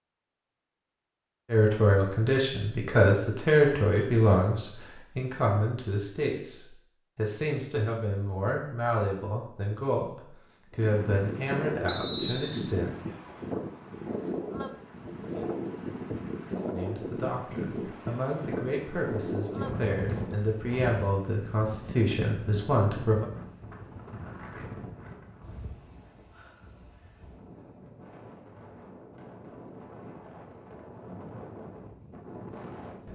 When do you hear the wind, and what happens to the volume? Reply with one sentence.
You can hear the wind from 10.7 to 33.1 s, getting quieter.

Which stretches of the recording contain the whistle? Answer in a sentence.
You can hear the whistle from 11.8 to 12.7 s.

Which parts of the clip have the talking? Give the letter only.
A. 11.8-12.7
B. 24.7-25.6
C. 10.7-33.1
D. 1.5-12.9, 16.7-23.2
D.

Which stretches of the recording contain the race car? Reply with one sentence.
The race car can't be heard in this clip.